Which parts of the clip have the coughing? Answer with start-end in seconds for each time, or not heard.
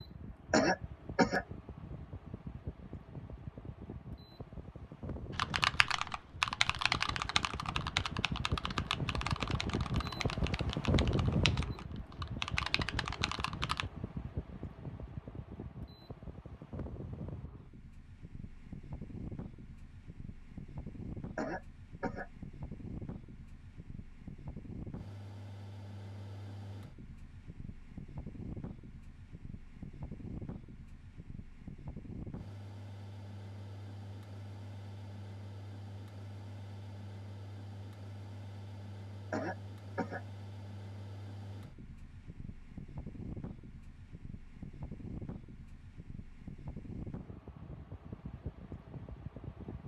0.5-1.4, 21.4-22.3, 39.3-40.2.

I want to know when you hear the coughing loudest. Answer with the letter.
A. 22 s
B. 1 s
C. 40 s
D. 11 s
B.